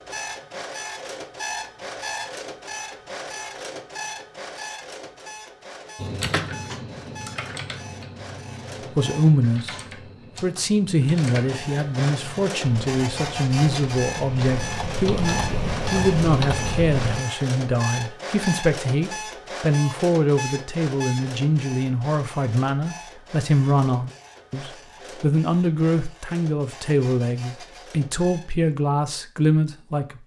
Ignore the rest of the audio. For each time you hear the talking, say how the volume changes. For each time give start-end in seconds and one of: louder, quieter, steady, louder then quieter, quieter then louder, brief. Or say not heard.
8.9-9.8 brief
10.4-30.2 steady.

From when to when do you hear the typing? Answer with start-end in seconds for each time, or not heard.
6.0-17.2.